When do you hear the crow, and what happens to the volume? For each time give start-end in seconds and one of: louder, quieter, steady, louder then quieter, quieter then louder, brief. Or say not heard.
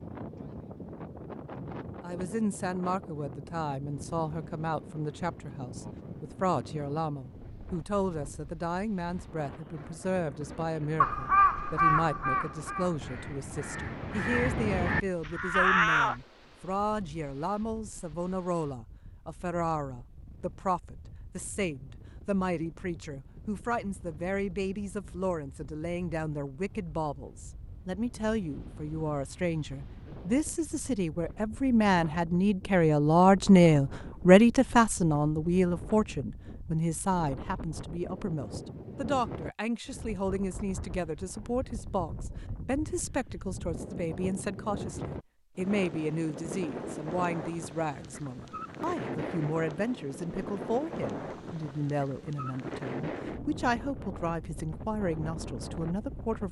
11.0-16.1 quieter then louder.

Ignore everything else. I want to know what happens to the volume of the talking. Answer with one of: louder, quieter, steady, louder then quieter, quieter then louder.
louder then quieter.